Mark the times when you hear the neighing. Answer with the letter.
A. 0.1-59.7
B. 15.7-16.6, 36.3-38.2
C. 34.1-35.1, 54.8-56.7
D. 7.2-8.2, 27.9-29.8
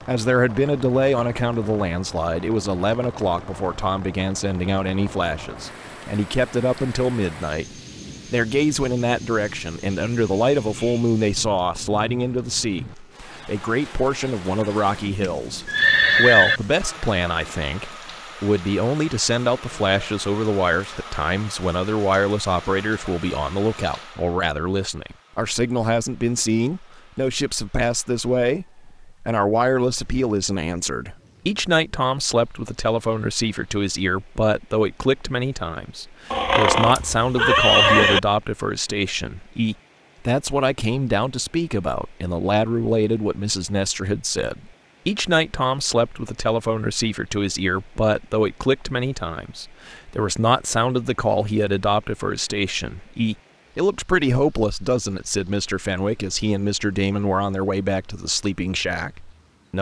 B.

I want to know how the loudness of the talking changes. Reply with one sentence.
The volume of the talking stays about the same.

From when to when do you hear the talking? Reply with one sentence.
The talking can be heard from 0.1 to 59.7 s.